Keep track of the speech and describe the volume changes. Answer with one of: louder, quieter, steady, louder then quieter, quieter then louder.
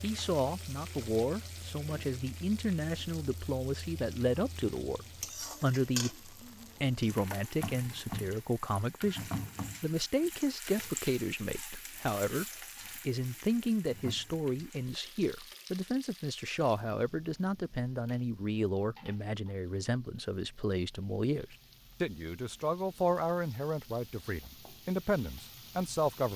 steady.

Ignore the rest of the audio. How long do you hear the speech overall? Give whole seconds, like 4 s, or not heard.
26 s.